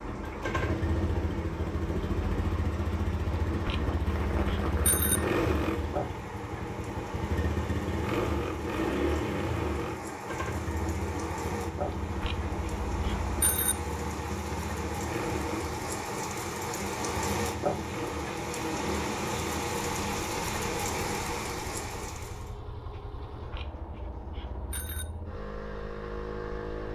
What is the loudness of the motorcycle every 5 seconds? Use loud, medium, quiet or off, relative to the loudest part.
loud, loud, medium, medium, quiet, medium.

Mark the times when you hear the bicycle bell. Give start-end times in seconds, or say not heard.
3.4-5.2, 11.9-13.8, 23.1-25.1.